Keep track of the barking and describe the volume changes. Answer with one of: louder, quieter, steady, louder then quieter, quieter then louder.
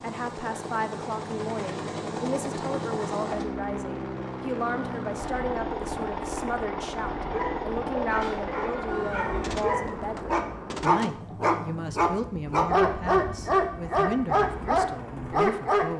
louder.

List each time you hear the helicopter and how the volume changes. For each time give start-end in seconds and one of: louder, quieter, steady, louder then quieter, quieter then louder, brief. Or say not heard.
0.0-15.9 quieter.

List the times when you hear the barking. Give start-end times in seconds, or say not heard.
7.2-15.9.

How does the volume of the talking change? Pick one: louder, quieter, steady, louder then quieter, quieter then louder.
steady.